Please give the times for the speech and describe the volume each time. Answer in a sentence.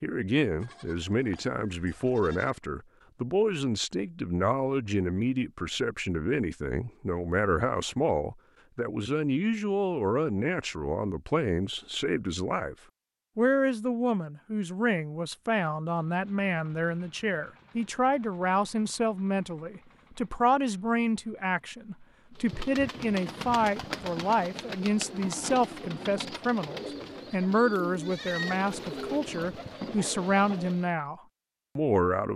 The speech can be heard from 0.0 to 12.8 s, at a steady volume; and from 13.3 to 32.3 s, at a steady volume.